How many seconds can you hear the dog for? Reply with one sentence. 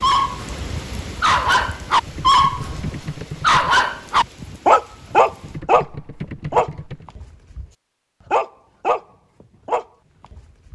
You can hear the dog for 7 seconds altogether.